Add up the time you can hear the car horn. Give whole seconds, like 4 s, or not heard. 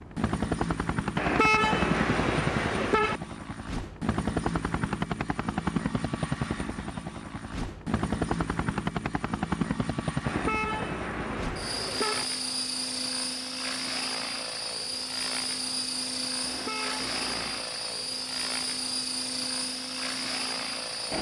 5 s.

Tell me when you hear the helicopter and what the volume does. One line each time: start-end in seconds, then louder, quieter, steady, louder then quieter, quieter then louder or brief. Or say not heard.
0.0-21.1 steady.